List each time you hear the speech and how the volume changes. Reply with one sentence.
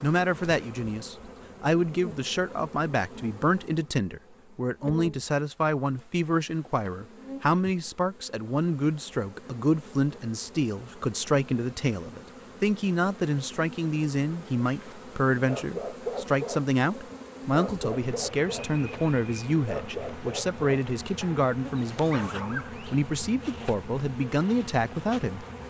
You can hear the speech from 0.0 to 25.4 s, at a steady volume.